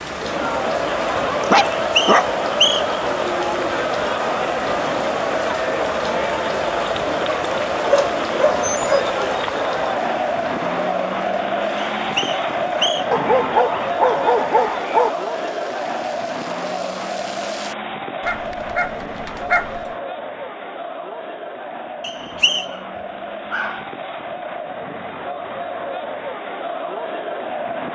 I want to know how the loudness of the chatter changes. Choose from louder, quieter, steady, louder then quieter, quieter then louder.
quieter.